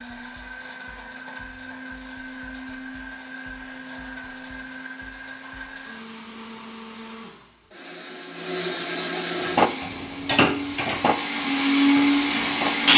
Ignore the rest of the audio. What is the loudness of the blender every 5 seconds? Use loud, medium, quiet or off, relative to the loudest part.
quiet, quiet, loud.